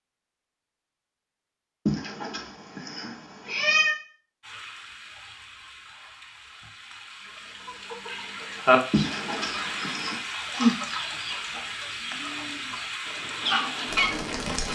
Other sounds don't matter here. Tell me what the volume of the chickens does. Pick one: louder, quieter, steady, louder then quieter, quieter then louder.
quieter then louder.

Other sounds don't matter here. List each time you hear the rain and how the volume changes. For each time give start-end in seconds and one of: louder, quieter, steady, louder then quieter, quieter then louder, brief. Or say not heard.
4.4-14.7 louder.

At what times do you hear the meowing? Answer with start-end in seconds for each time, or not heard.
1.9-4.0, 8.9-10.2.